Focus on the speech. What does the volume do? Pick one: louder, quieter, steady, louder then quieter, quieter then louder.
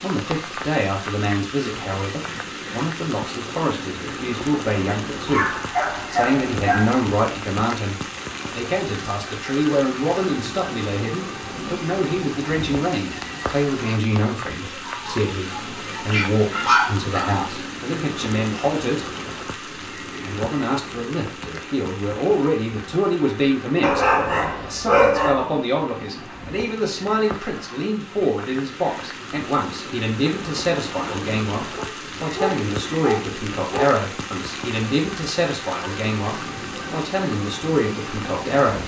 steady.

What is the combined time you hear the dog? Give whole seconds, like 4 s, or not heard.
8 s.